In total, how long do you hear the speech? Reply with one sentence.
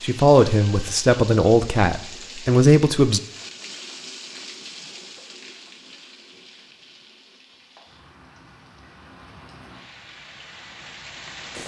You can hear the speech for 3 seconds altogether.